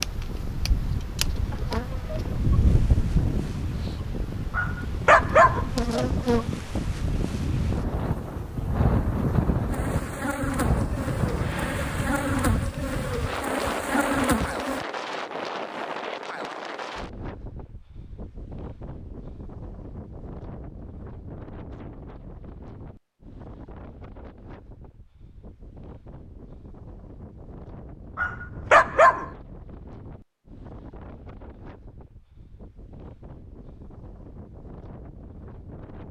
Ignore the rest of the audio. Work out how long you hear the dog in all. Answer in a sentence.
You can hear the dog for 2 seconds altogether.